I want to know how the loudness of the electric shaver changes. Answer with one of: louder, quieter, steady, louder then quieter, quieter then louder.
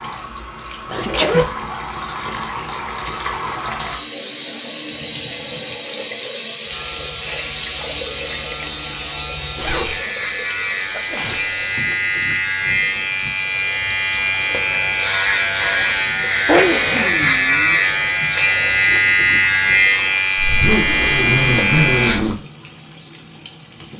louder.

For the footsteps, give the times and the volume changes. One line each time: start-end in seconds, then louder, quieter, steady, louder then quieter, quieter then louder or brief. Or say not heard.
not heard.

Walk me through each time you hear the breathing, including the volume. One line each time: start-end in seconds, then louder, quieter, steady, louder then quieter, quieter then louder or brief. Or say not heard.
not heard.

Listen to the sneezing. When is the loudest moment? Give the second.
17 s.